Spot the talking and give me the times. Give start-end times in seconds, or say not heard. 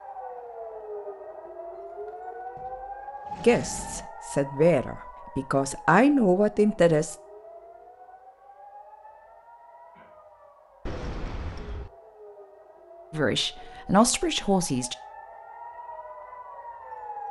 3.4-7.2, 13.1-14.9.